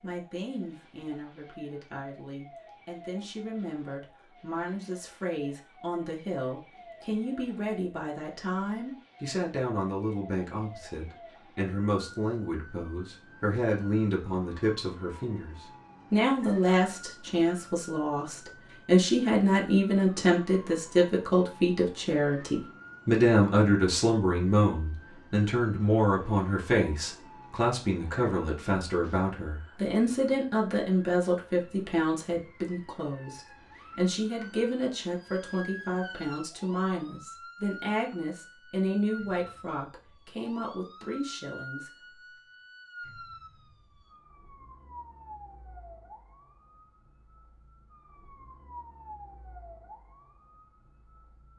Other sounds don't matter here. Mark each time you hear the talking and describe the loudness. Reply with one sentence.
The talking can be heard from 0.0 to 42.0 s, getting louder then quieter.